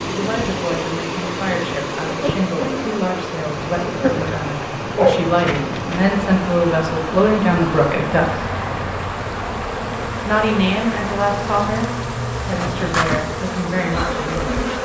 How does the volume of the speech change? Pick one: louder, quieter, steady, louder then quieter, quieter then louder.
louder then quieter.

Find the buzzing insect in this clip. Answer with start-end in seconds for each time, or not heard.
0.0-14.8.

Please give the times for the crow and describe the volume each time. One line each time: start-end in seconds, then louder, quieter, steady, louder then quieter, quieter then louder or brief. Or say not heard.
not heard.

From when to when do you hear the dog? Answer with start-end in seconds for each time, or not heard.
4.2-6.0.